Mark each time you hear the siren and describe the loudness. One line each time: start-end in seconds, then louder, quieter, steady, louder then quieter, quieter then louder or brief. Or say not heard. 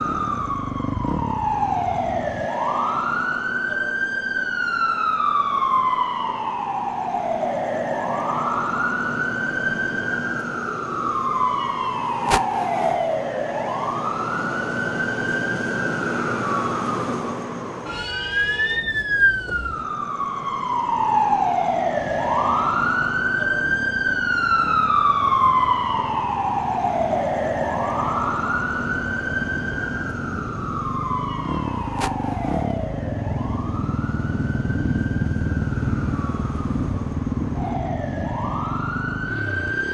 0.0-39.9 quieter.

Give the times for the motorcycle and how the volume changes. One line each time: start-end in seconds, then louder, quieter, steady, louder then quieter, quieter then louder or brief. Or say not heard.
0.0-2.5 brief
21.9-39.9 louder.